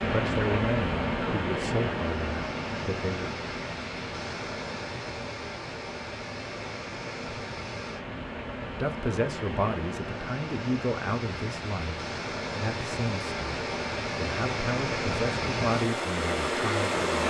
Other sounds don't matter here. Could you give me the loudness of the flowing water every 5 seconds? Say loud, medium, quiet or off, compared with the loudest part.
loud, medium, medium, loud.